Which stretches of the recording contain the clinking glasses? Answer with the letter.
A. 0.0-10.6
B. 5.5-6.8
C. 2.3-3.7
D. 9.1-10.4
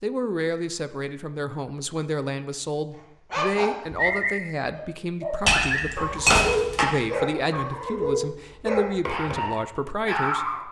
B.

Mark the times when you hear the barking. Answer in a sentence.
You can hear the barking from 3.3 to 10.6 s.